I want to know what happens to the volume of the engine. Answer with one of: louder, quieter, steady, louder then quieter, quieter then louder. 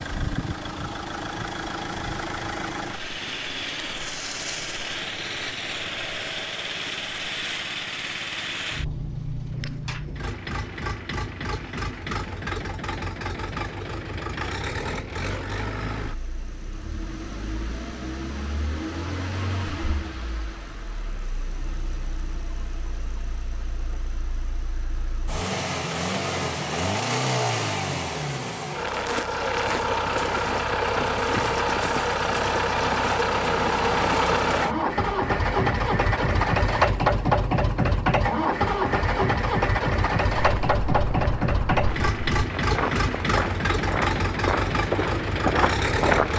louder.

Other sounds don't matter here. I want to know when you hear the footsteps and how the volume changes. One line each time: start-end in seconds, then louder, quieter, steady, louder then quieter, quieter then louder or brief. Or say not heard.
40.4-46.3 louder.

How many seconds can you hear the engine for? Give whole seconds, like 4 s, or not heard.
46 s.